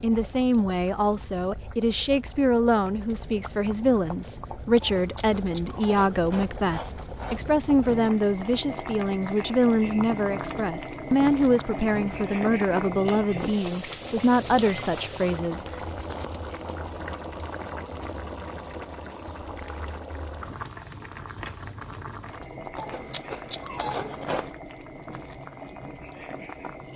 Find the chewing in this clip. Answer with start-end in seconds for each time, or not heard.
4.8-7.5, 22.8-24.6.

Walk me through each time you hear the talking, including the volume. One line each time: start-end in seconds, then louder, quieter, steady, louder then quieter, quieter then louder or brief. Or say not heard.
0.0-16.1 steady.